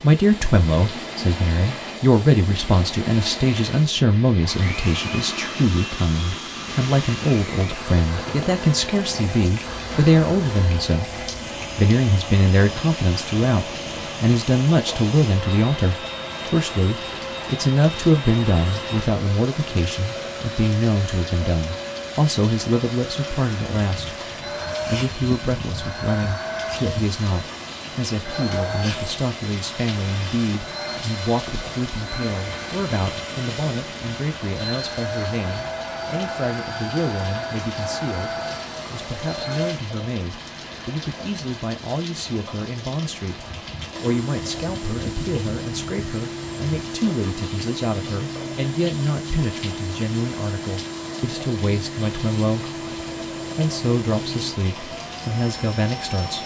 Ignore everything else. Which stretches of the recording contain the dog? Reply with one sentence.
You can't hear the dog here.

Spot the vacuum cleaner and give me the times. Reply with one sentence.
You can hear the vacuum cleaner from 0.0 to 39.8 s and from 43.9 to 56.4 s.